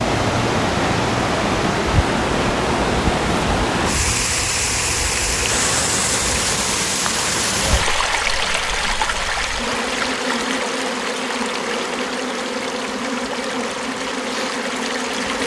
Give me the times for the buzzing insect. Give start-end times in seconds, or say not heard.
0.0-15.4.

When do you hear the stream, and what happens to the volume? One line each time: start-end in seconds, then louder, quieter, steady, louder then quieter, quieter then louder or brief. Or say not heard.
0.0-15.4 quieter.